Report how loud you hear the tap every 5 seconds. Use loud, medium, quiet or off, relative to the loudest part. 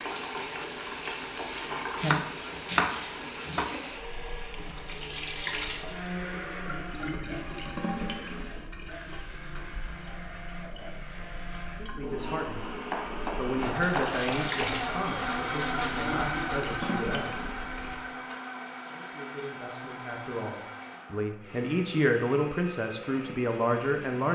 loud, loud, loud, loud, off.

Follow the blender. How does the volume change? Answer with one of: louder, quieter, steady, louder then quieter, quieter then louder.
louder then quieter.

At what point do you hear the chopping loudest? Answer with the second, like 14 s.
3 s.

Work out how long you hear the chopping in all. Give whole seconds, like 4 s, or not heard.
5 s.